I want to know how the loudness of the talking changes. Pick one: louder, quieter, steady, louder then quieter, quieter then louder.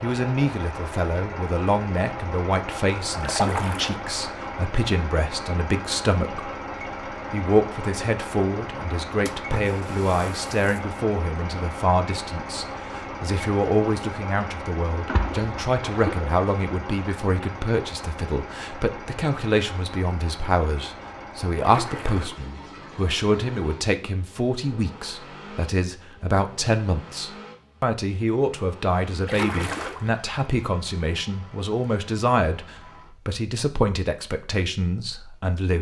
steady.